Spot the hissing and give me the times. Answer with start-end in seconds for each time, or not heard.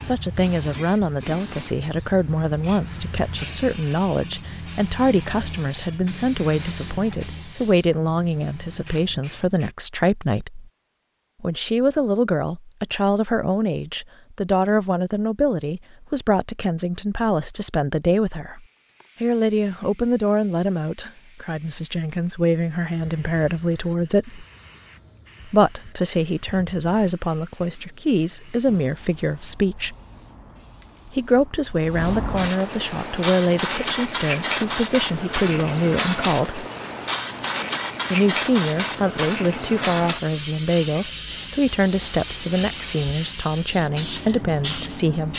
0.0-9.7, 18.6-45.3.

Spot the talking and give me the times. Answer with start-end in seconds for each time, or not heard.
0.0-10.7, 11.4-18.6, 19.2-24.4, 25.4-29.9, 31.1-36.6, 38.1-45.3.